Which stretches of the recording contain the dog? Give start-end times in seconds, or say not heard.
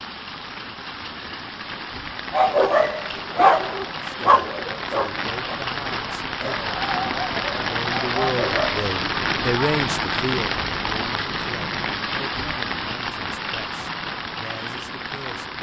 2.3-8.9.